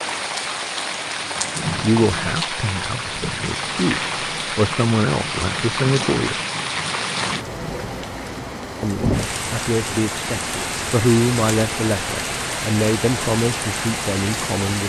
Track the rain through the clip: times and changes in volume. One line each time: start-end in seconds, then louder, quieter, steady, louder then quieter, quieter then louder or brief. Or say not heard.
0.0-14.8 steady.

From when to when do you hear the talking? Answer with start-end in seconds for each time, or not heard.
1.6-6.3, 8.8-14.8.